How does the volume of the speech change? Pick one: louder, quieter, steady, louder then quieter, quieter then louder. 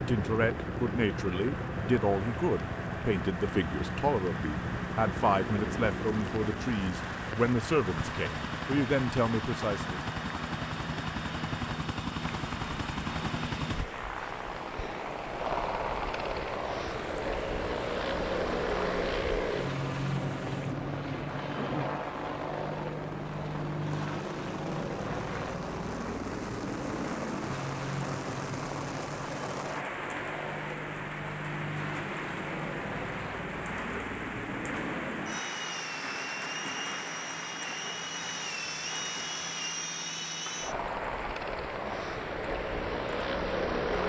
steady.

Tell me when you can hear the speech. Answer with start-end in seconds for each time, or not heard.
0.1-10.0.